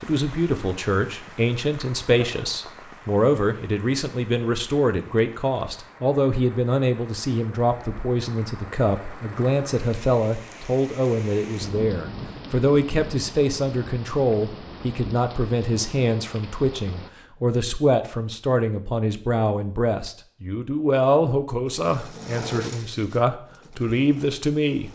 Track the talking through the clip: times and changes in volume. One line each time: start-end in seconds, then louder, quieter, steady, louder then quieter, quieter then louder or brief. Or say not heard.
0.0-24.9 steady.